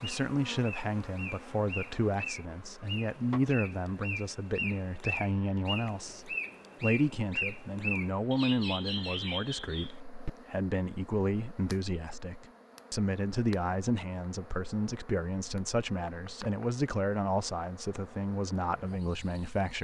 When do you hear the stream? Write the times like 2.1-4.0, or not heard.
not heard.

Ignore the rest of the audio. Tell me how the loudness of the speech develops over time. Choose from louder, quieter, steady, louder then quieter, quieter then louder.
steady.